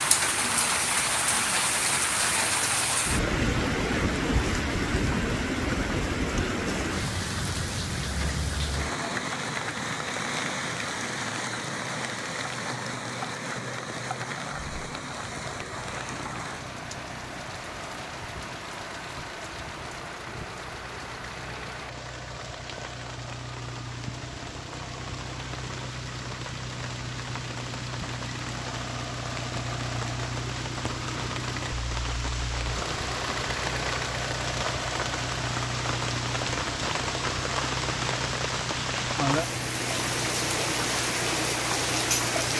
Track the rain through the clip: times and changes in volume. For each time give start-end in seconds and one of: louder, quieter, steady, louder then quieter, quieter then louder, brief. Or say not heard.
0.0-42.5 quieter then louder.